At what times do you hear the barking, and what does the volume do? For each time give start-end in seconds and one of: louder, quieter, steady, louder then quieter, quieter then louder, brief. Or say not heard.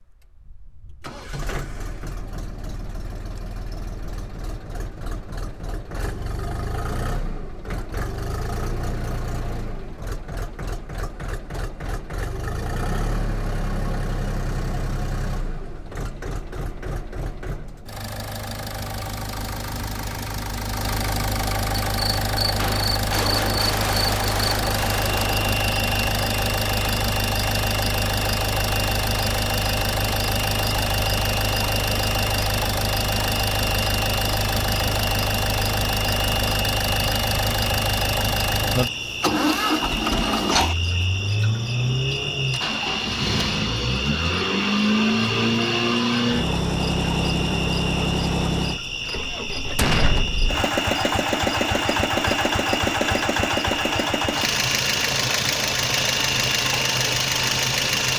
not heard.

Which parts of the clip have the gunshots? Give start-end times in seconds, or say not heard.
22.6-25.6, 49.8-50.2.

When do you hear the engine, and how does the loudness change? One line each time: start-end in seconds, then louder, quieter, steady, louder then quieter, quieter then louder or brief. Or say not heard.
0.0-58.1 louder.